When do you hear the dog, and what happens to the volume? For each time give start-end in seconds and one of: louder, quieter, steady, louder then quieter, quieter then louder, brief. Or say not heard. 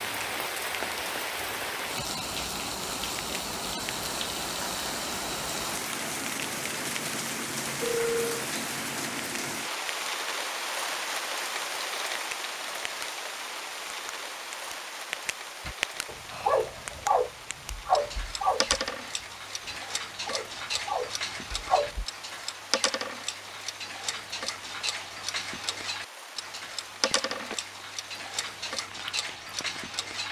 15.7-22.1 quieter then louder.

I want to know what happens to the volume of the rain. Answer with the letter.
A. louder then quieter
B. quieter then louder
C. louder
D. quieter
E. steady
D.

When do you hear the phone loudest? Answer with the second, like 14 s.
8 s.